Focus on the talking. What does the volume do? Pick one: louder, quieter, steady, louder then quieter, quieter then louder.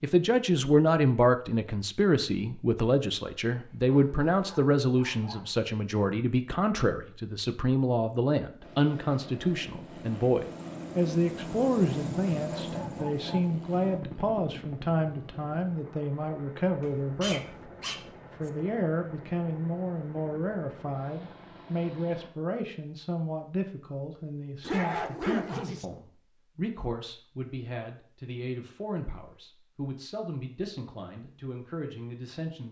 quieter.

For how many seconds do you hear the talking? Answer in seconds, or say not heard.
32 s.